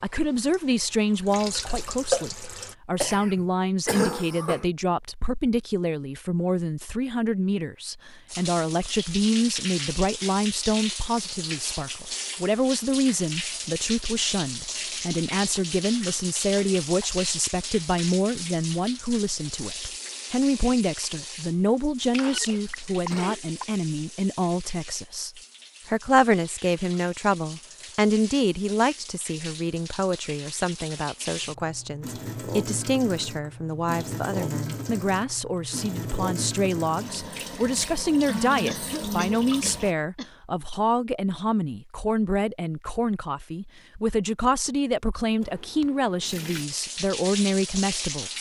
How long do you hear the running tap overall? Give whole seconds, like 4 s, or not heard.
37 s.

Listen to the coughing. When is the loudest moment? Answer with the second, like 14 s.
4 s.